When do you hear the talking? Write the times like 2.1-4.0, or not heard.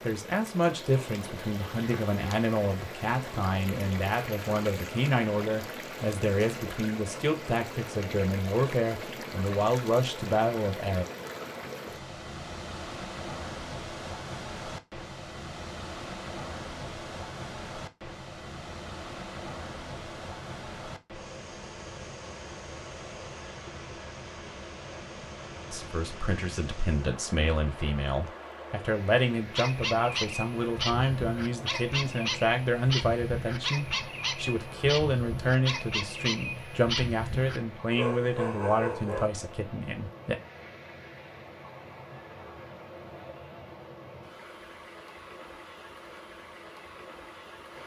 0.1-11.1, 25.7-40.4.